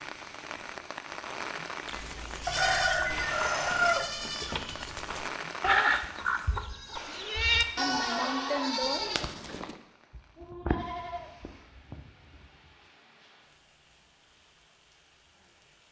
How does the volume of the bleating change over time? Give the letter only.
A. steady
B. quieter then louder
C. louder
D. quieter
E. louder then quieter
E.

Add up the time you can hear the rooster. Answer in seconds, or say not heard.
2 s.